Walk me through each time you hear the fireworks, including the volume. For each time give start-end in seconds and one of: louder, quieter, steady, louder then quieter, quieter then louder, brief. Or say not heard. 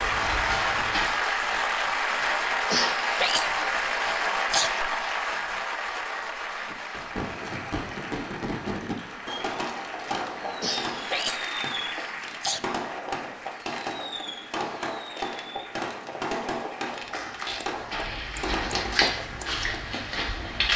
6.7-19.1 steady.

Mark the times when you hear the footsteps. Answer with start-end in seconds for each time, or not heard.
0.0-1.8, 17.1-20.7.